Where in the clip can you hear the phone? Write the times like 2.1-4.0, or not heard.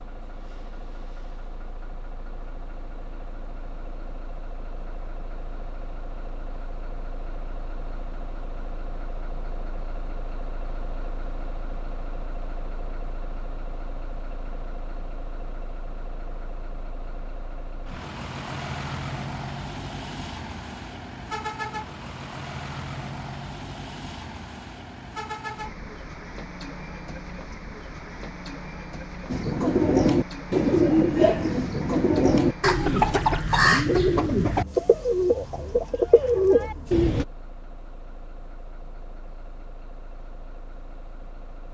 not heard.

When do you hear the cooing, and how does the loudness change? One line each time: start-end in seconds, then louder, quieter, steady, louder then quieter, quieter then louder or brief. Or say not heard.
29.2-37.2 steady.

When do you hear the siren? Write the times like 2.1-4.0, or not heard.
not heard.